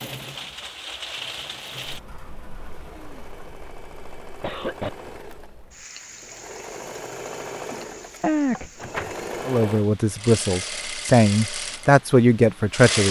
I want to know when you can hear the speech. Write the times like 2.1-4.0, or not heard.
9.4-13.0.